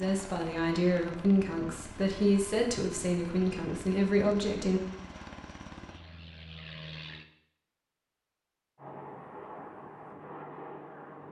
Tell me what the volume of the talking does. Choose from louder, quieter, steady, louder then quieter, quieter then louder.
steady.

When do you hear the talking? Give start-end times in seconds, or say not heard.
0.0-4.8.